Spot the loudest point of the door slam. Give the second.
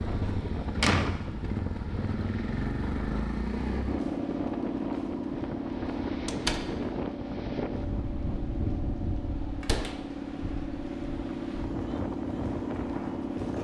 1 s.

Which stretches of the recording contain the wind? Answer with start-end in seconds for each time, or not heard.
0.0-13.5.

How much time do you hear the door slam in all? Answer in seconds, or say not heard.
2 s.